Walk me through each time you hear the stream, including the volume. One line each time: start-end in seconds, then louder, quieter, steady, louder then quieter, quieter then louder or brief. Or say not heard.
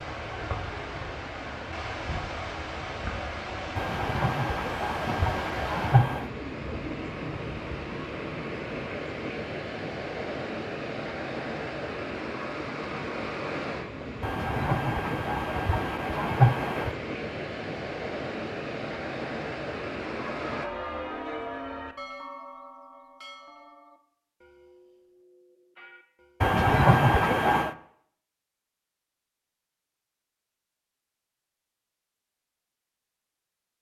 0.0-20.6 steady.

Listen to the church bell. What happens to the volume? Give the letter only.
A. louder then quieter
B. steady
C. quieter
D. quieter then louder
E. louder
C.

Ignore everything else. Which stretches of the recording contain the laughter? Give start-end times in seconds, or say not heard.
3.8-6.2, 14.2-16.9, 26.4-27.8.